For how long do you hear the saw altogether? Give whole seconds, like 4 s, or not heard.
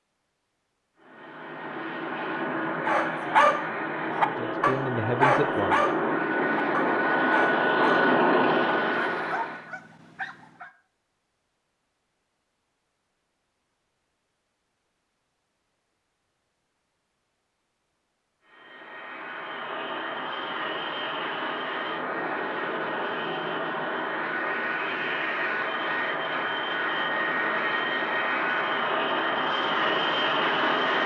not heard.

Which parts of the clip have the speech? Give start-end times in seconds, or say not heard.
4.2-5.9.